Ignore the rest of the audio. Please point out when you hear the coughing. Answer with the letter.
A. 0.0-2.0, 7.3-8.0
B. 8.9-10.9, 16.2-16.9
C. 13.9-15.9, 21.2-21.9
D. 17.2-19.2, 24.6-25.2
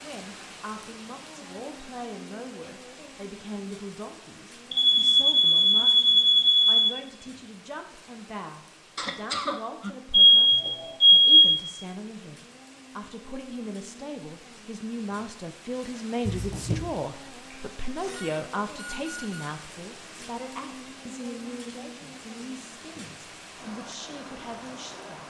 B.